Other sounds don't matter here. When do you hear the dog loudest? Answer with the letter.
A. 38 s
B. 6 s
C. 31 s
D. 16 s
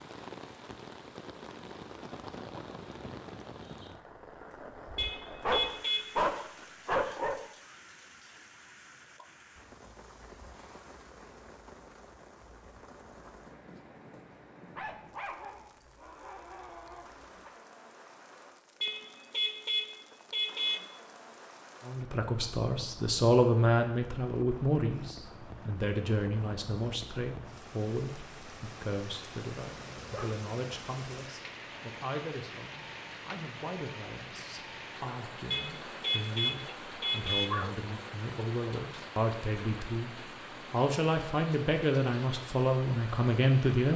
B.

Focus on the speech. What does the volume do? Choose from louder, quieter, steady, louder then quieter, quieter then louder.
quieter then louder.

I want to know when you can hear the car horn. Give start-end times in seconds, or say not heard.
5.0-6.2, 18.8-20.8, 35.5-37.5.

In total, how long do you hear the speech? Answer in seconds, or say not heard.
22 s.